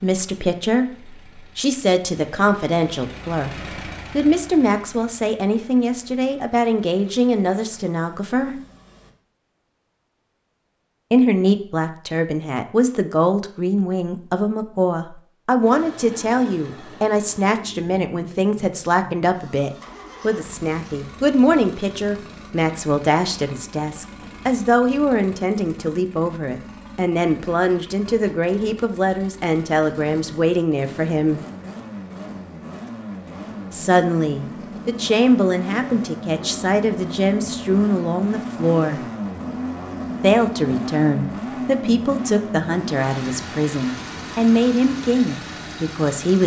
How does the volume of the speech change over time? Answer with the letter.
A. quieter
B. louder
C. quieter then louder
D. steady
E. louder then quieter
D.